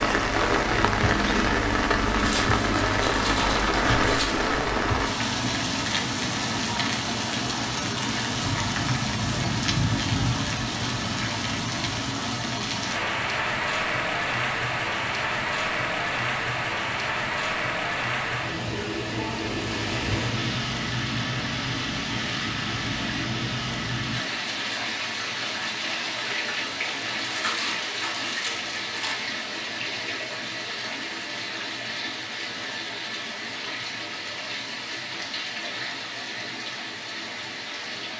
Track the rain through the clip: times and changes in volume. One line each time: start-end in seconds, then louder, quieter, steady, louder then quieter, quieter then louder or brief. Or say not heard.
0.0-38.1 quieter.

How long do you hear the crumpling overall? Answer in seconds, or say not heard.
4 s.